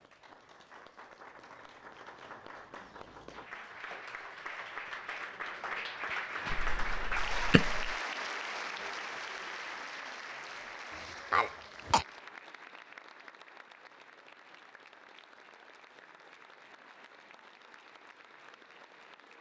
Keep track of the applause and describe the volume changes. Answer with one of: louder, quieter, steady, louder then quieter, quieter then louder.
louder then quieter.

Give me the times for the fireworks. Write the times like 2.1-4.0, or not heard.
not heard.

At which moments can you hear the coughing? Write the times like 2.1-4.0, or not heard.
6.5-8.0, 10.9-12.1.